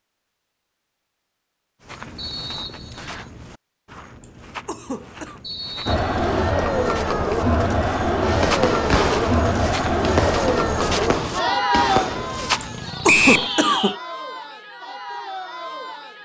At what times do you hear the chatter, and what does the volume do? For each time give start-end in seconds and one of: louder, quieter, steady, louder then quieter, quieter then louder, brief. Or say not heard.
5.8-16.1 quieter.